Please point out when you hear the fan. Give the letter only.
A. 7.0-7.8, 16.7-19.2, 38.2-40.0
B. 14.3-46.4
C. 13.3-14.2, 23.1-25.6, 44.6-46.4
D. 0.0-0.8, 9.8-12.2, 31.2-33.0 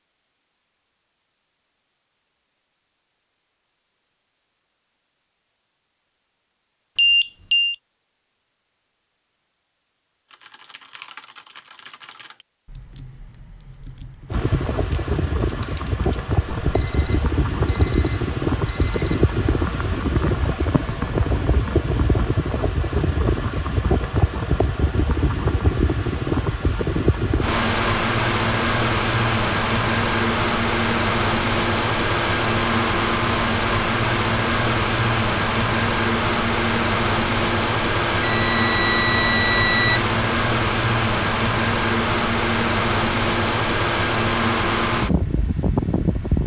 B.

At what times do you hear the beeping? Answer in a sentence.
You can hear the beeping from 7.0 to 7.8 s, from 16.7 to 19.2 s and from 38.2 to 40.0 s.